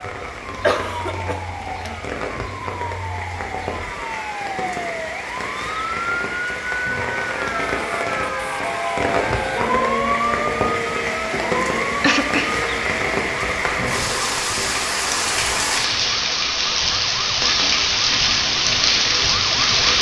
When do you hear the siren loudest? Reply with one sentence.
The volume of the siren peaks at 10 seconds.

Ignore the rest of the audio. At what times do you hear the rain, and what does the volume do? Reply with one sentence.
You can hear the rain from 0.0 to 19.9 s, getting louder.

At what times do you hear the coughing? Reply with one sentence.
You can hear the coughing from 0.2 to 2.0 s and from 11.3 to 12.6 s.